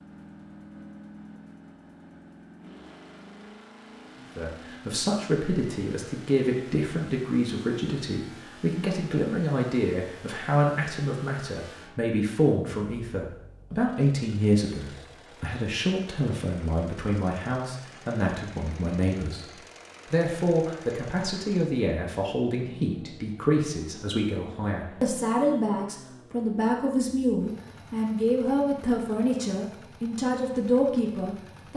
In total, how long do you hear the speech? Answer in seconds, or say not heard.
27 s.